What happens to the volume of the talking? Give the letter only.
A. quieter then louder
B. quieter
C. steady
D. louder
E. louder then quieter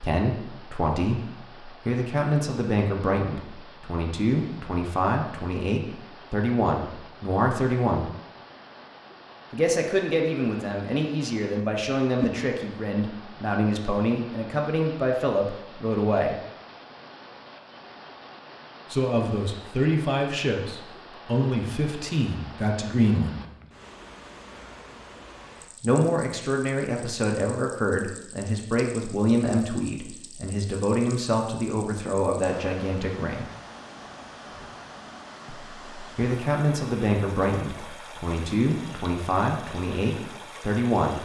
C.